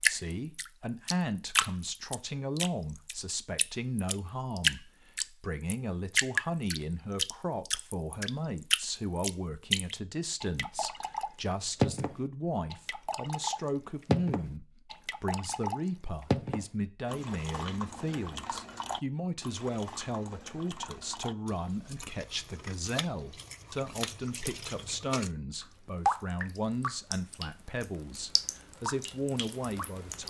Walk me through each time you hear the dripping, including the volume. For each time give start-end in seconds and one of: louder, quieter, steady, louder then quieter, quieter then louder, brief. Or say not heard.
0.0-30.2 quieter then louder.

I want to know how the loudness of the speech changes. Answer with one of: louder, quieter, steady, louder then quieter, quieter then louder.
steady.